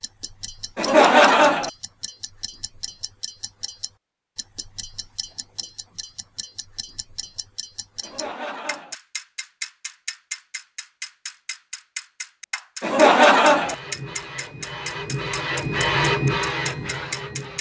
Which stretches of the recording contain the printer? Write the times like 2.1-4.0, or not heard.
13.6-17.5.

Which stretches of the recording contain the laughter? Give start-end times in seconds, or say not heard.
0.8-1.7, 8.0-8.9, 12.8-13.8.